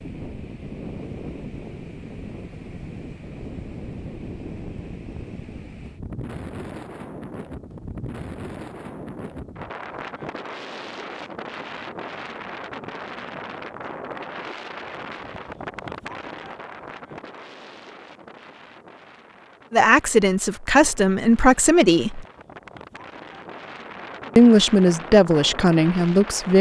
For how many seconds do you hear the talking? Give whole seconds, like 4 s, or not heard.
5 s.